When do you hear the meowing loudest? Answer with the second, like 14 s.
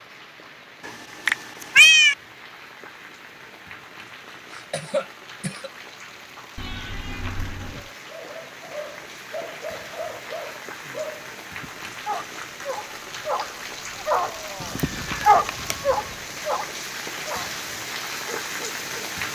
2 s.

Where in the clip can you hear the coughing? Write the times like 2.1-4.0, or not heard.
4.5-5.7.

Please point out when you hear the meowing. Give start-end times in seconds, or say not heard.
0.8-2.1, 6.5-7.9, 14.6-15.9.